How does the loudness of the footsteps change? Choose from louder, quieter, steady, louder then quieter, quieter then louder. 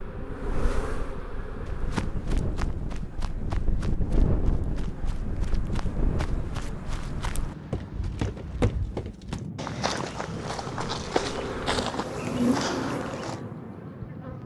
louder.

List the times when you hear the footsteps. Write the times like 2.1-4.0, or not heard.
1.6-13.4.